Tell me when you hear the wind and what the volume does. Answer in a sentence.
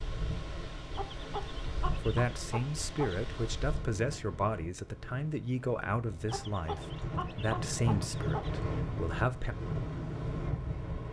The wind can be heard from 0.0 to 11.0 s, getting quieter then louder.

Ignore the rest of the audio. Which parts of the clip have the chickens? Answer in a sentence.
You can hear the chickens from 0.9 to 3.2 s and from 6.2 to 8.6 s.